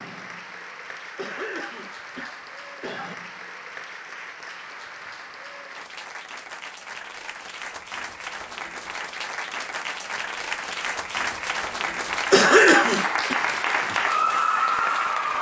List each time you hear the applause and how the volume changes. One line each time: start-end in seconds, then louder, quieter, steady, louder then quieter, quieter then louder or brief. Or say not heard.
0.0-15.3 louder.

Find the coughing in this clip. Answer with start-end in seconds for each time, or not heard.
1.1-3.1, 12.3-13.4.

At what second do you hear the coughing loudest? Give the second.
13 s.